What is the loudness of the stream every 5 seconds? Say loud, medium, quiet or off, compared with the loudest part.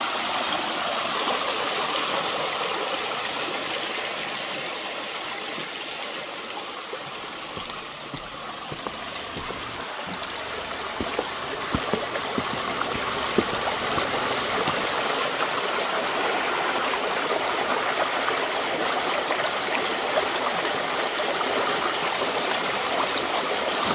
loud, medium, loud, loud, loud.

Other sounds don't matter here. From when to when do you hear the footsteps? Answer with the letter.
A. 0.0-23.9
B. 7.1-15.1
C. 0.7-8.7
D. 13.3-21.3
B.